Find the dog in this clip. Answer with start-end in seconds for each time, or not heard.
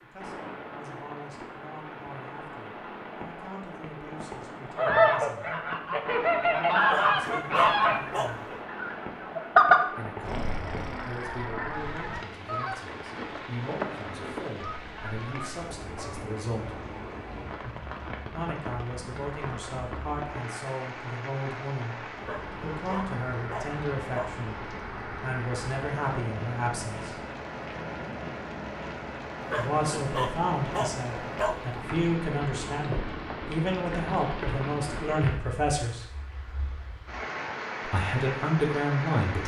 6.8-8.6, 22.1-24.3, 29.4-31.9.